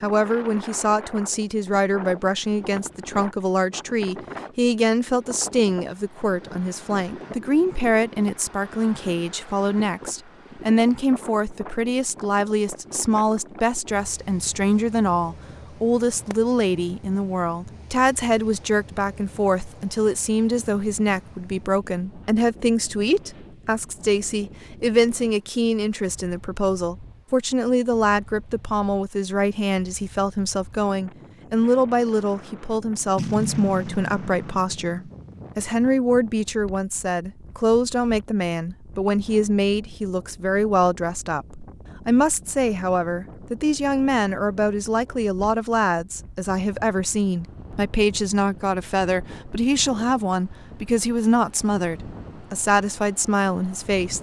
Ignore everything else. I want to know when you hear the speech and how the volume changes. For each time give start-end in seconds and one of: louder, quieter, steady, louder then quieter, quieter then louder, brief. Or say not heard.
0.0-54.1 steady.